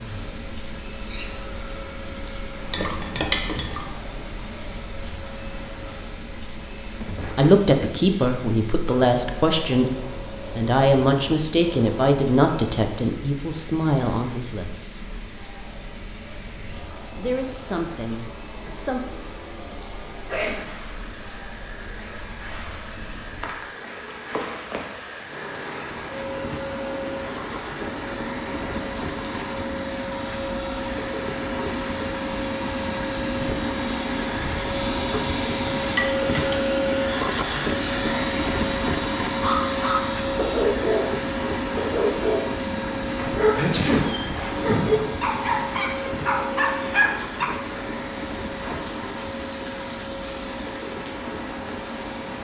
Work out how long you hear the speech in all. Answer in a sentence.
The speech can be heard for 10 seconds in total.